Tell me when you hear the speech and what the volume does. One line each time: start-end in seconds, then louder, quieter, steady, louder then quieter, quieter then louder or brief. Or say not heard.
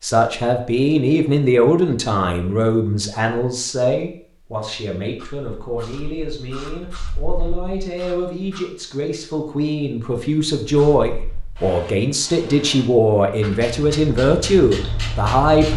0.0-15.7 quieter then louder.